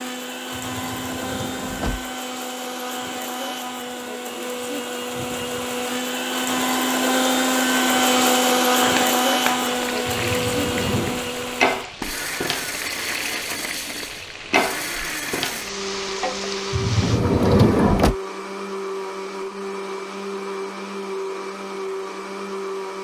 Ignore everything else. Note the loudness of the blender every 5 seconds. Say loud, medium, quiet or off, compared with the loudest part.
medium, loud, medium, medium, medium.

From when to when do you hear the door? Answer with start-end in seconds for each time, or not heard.
0.5-2.0, 10.1-11.2, 16.7-18.1.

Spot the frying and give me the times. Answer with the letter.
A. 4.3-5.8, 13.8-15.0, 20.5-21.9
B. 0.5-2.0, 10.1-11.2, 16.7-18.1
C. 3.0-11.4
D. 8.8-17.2
D.